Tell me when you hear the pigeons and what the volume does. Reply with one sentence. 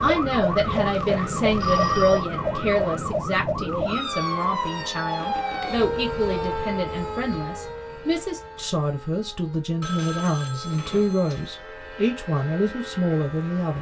The pigeons can't be heard in this clip.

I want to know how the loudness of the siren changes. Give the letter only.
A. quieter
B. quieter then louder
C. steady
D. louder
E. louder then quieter
A.